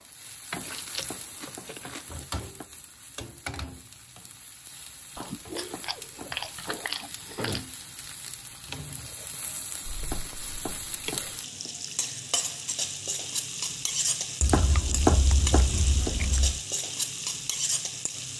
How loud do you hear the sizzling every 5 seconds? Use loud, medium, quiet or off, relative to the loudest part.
medium, medium, loud, loud.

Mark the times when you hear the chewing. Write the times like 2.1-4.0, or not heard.
0.7-2.0, 5.2-7.7, 9.8-11.2, 14.4-16.6.